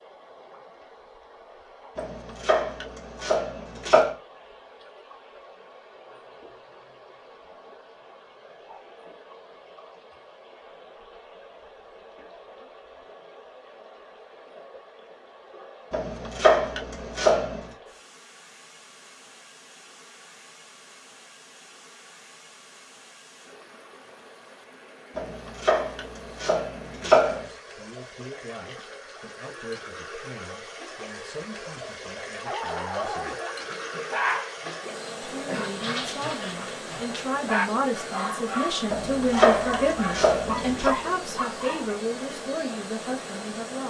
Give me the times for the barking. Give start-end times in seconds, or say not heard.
32.5-41.9.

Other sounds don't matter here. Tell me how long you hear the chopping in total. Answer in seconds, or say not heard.
8 s.